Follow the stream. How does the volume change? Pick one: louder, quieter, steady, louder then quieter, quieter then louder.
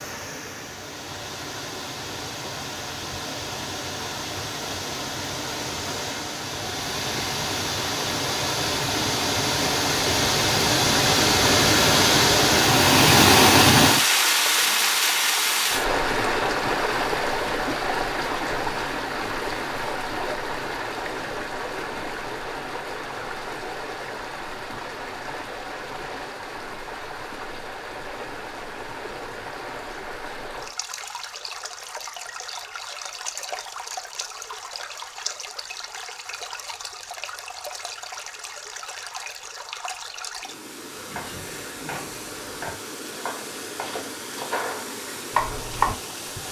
louder then quieter.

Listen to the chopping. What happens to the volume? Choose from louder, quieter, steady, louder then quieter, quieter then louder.
louder.